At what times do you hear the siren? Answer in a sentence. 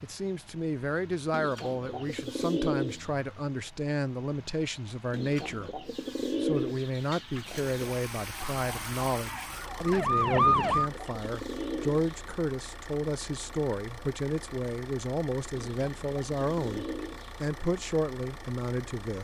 You can hear the siren from 8.4 to 10.9 s.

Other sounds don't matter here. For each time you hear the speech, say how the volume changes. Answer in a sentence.
You can hear the speech from 0.0 to 19.2 s, at a steady volume.